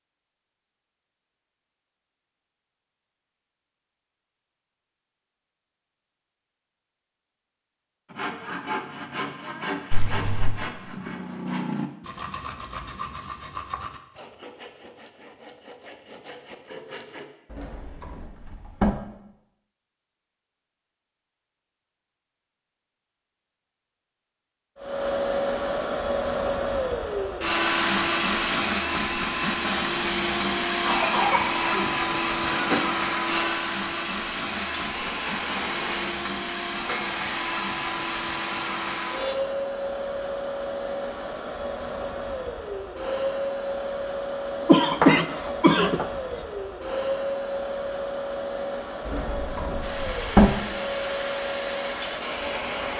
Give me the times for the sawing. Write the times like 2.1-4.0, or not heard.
8.1-17.2, 34.5-39.4, 49.8-52.9.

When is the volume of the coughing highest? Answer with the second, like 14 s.
45 s.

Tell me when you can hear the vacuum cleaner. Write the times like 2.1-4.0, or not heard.
24.8-52.9.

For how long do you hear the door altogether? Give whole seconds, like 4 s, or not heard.
3 s.